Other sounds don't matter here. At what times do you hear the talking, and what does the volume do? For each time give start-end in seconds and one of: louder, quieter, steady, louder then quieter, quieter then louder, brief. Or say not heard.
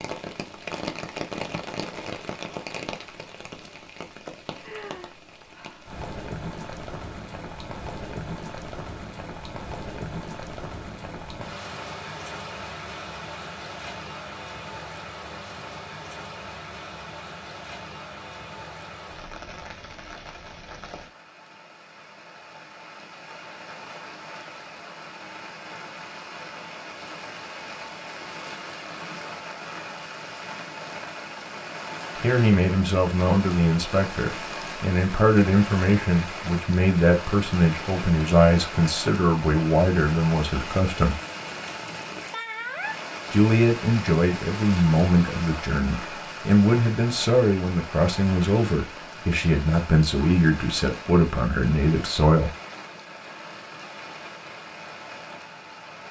32.2-41.2 steady
43.3-52.5 steady.